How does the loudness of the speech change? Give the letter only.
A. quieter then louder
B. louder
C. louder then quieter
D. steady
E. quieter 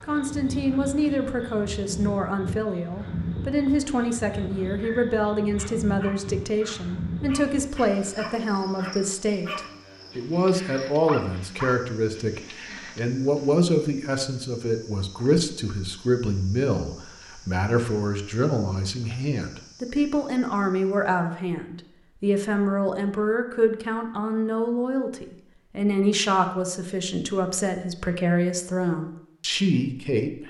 D.